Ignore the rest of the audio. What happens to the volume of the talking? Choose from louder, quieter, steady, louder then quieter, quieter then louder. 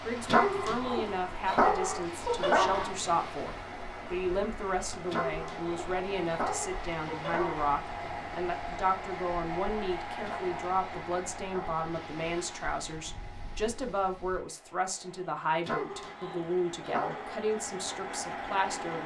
steady.